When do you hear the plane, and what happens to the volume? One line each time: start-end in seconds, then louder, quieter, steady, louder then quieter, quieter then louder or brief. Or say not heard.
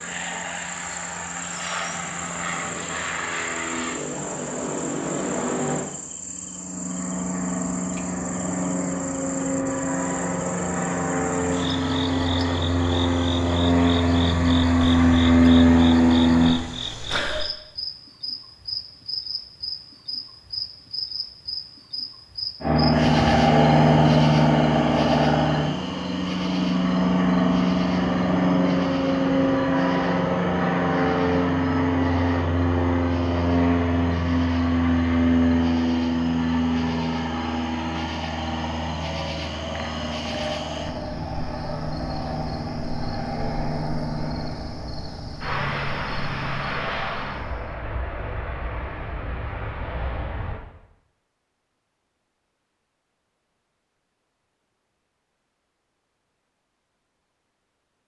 0.0-16.6 louder
22.6-50.6 quieter.